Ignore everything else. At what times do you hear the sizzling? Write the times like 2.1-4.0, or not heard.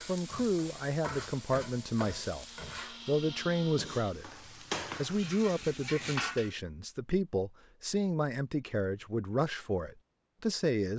0.0-6.5.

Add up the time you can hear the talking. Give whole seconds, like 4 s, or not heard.
10 s.